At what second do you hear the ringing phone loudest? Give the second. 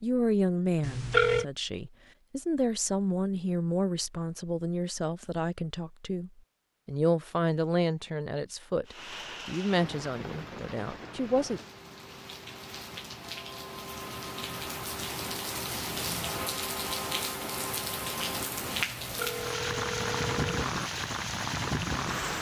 1 s.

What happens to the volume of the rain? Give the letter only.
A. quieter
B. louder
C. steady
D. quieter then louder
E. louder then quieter
B.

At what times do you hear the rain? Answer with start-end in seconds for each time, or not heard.
8.8-22.3.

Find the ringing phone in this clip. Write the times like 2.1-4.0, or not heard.
0.8-1.4, 18.9-20.6.